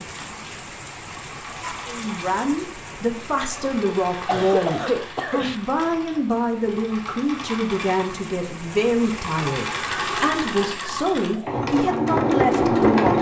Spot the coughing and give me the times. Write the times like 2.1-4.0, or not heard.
3.9-5.5.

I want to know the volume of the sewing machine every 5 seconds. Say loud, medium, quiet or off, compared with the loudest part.
quiet, quiet, loud.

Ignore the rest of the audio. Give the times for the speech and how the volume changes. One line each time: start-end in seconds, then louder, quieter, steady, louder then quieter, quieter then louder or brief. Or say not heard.
1.9-13.1 steady.